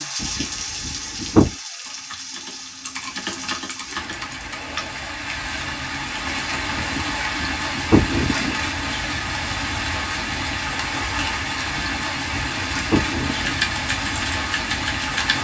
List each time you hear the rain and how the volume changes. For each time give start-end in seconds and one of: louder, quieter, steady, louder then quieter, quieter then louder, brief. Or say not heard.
0.0-15.3 louder.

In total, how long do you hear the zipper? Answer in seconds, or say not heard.
5 s.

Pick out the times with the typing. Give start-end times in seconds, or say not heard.
1.9-5.0, 13.3-15.3.